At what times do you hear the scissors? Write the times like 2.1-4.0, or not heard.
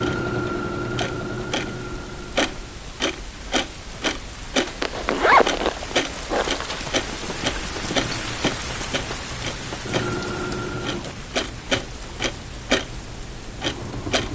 not heard.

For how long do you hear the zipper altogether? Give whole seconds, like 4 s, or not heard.
2 s.